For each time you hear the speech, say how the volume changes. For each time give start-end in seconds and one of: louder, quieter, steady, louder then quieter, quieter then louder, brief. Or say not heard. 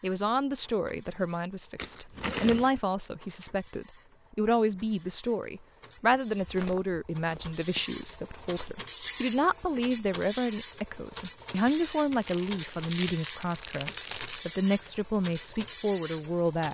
0.0-16.6 steady.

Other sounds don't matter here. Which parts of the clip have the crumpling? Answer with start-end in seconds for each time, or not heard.
1.8-2.7, 11.9-14.4.